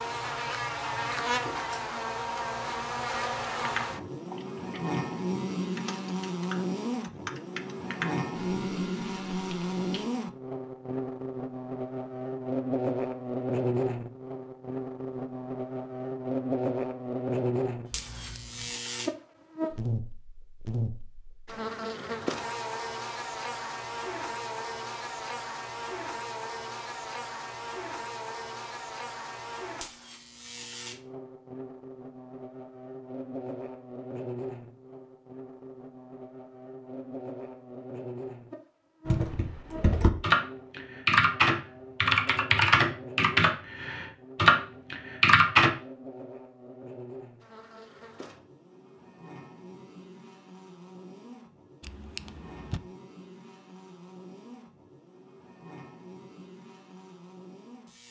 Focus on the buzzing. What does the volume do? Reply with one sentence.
The volume of the buzzing goes down.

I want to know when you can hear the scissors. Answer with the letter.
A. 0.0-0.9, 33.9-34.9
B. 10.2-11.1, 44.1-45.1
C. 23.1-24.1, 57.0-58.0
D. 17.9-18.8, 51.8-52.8
D.